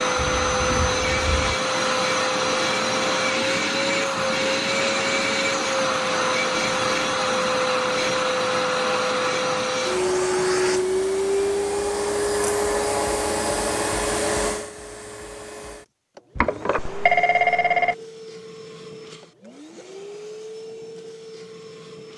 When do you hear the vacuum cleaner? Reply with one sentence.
The vacuum cleaner can be heard from 0.0 to 22.1 s.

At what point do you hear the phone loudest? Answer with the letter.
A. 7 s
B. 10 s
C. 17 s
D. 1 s
C.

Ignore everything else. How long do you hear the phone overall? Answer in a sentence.
The phone can be heard for 3 seconds in total.